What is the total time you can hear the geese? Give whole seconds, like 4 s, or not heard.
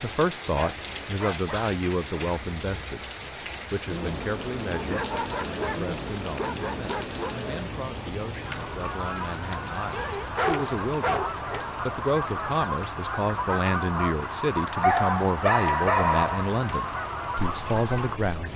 10 s.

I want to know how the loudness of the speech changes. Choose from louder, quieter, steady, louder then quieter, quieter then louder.
quieter then louder.